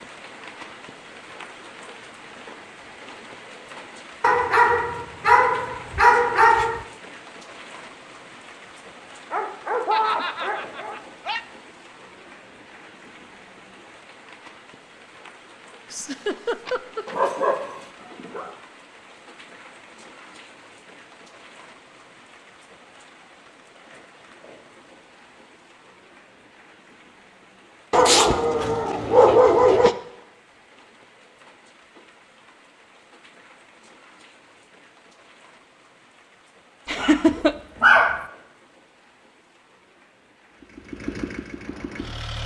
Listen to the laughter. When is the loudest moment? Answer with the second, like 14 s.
37 s.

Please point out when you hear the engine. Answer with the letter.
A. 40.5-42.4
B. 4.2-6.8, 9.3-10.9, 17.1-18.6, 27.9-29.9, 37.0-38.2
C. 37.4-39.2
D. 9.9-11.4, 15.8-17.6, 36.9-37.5
A.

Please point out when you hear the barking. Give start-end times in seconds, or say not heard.
4.2-6.8, 9.3-10.9, 17.1-18.6, 27.9-29.9, 37.0-38.2.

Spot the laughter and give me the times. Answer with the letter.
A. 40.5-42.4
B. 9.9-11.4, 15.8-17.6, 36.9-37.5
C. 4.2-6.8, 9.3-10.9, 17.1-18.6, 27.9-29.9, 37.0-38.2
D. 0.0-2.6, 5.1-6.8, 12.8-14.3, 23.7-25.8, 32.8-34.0
B.